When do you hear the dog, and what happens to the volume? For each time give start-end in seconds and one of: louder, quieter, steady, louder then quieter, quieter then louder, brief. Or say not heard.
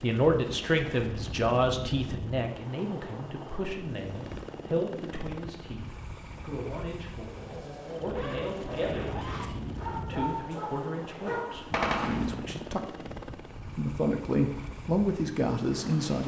7.3-12.3 steady.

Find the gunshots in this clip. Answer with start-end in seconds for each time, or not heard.
11.7-12.7.